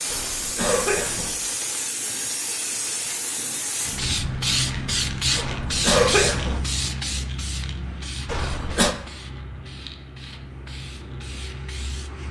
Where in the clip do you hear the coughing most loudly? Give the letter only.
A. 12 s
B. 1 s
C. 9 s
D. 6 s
D.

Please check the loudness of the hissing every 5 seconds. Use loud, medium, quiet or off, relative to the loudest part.
loud, loud, medium.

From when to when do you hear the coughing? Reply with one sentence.
The coughing can be heard from 0.1 to 1.4 s, from 5.3 to 6.6 s and from 8.2 to 8.9 s.